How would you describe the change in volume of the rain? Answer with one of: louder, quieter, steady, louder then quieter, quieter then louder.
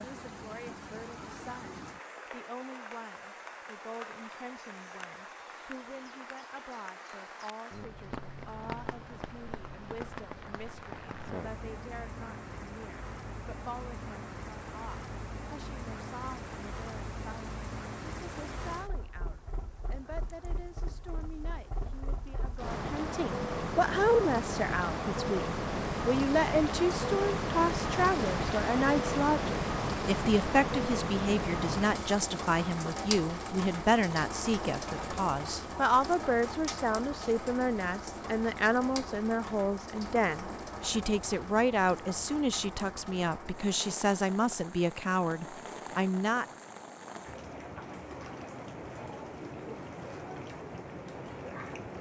louder then quieter.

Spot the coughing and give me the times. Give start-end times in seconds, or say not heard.
not heard.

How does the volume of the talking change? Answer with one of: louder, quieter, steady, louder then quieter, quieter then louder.
louder.